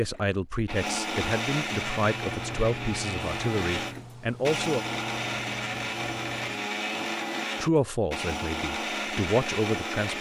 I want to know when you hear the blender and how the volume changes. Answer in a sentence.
You can hear the blender from 0.0 to 10.1 s, at a steady volume.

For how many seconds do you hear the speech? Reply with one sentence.
The speech can be heard for 7 seconds in total.